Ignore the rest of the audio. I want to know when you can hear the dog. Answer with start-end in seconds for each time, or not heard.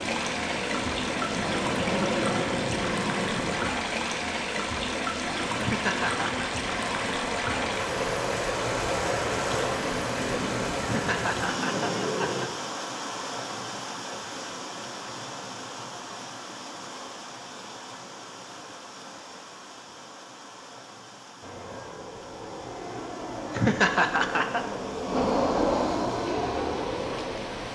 not heard.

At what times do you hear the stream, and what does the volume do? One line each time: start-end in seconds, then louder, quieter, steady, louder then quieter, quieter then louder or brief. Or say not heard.
0.0-27.6 quieter.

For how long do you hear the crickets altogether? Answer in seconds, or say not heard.
not heard.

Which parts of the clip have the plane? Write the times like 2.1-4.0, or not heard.
0.0-3.7, 5.3-12.5, 21.4-27.6.